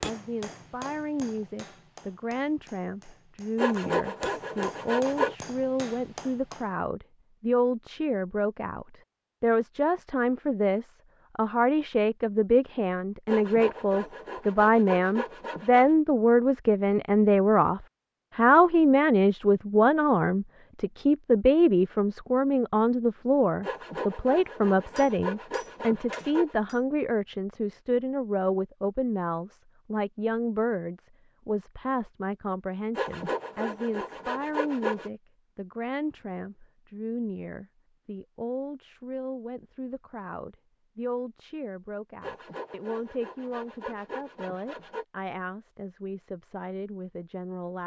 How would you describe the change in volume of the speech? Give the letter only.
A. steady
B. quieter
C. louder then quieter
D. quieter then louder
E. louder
C.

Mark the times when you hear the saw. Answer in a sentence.
The saw can be heard from 3.5 to 5.3 s, from 13.2 to 15.9 s, from 23.6 to 26.6 s, from 33.0 to 35.1 s and from 42.2 to 45.0 s.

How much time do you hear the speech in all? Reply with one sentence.
The speech can be heard for 48 seconds in total.